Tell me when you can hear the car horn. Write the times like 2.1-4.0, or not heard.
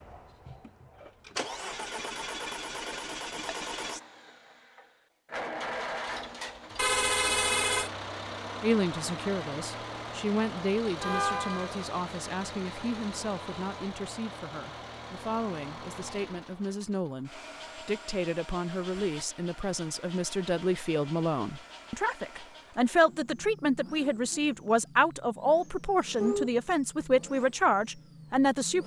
6.8-7.9, 11.0-11.8, 26.1-26.6.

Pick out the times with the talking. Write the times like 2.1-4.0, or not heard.
8.6-28.8.